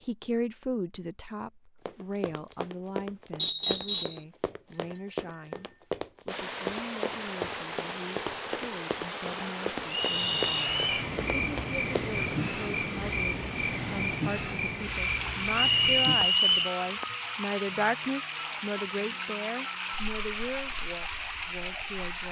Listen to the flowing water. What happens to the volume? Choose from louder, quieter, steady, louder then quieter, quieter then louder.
steady.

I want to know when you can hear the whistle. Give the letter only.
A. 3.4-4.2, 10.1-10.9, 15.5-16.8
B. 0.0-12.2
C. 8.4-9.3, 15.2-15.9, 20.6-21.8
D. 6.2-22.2
A.